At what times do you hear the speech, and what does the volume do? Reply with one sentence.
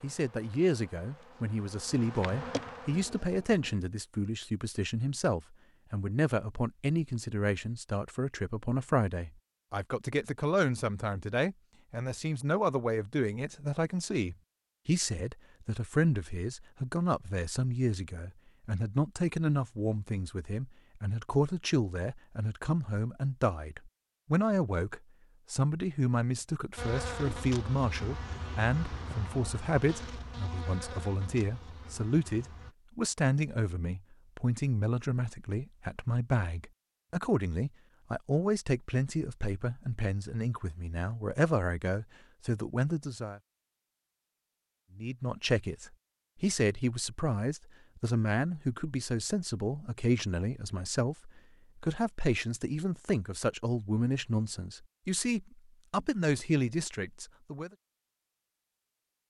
The speech can be heard from 0.0 to 43.4 s, at a steady volume; and from 45.0 to 57.7 s, at a steady volume.